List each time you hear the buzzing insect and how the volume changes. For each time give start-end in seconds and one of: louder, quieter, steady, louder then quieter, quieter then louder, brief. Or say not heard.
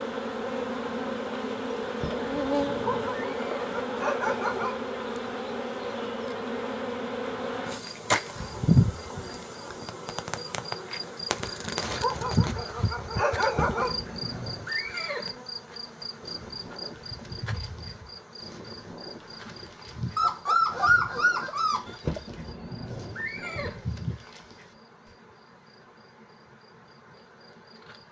0.0-28.0 quieter.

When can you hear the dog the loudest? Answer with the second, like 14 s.
21 s.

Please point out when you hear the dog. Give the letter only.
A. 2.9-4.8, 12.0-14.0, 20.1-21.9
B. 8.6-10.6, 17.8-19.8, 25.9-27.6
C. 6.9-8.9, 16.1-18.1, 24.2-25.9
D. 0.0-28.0
A.